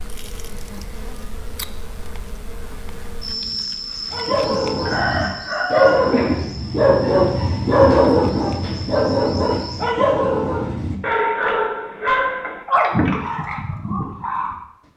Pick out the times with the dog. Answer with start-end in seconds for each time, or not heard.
4.1-14.6.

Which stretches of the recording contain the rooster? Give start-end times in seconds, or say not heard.
4.8-6.5.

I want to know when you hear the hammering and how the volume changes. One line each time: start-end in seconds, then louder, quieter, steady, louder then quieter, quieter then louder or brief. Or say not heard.
not heard.